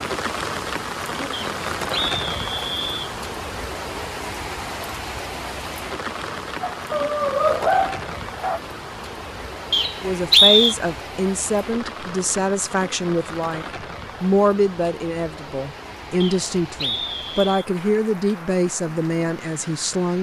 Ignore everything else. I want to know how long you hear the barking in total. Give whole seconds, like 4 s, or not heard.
2 s.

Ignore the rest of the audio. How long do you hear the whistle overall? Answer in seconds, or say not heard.
4 s.